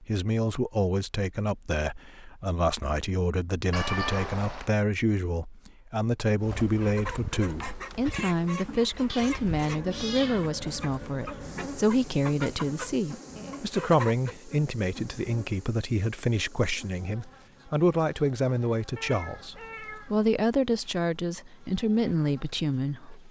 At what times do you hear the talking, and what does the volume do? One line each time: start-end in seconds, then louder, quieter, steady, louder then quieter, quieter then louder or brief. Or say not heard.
0.0-23.2 steady.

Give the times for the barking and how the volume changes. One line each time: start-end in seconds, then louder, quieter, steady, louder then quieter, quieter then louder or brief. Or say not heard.
not heard.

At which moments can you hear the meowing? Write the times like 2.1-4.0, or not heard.
3.7-4.7, 9.1-10.5, 18.9-20.3.